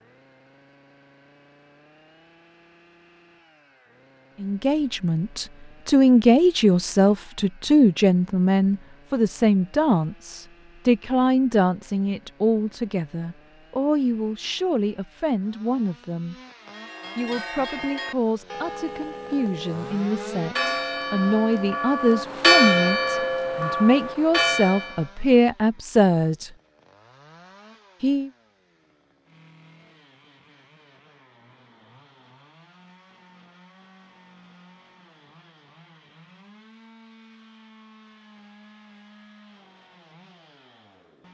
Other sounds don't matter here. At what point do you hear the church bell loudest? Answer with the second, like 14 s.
23 s.